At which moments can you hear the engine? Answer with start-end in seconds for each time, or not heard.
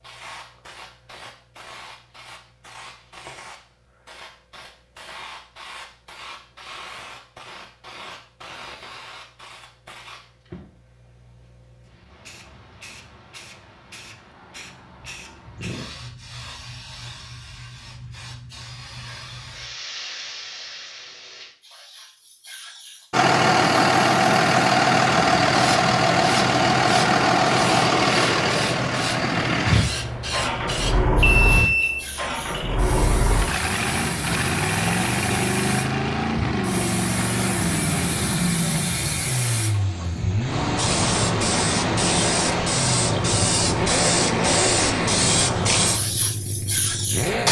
23.1-47.4.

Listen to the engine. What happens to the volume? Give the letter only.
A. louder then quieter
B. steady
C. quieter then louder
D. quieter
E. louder
D.